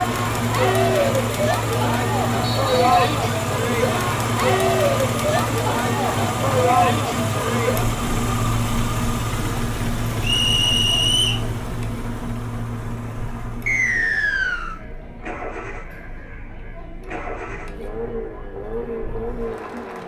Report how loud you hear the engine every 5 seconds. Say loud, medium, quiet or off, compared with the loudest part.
loud, loud, medium, medium.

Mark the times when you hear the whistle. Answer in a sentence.
The whistle can be heard from 2.4 to 3.0 s, from 10.2 to 11.4 s and from 13.7 to 14.8 s.